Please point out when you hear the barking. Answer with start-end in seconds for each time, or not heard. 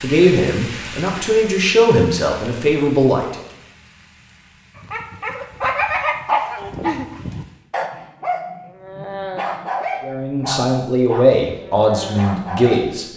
4.8-12.8.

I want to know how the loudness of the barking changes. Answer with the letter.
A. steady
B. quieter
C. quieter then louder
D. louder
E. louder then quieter
B.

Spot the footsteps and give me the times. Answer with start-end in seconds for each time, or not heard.
not heard.